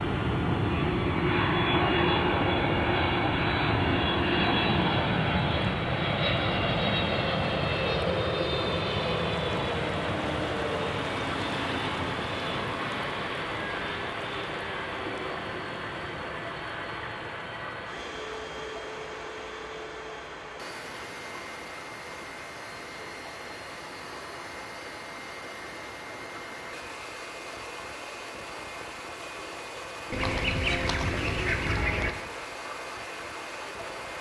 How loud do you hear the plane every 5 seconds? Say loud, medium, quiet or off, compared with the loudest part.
loud, loud, medium, quiet, quiet, quiet, quiet.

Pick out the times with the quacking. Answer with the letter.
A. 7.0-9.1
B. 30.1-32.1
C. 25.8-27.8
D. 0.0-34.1
B.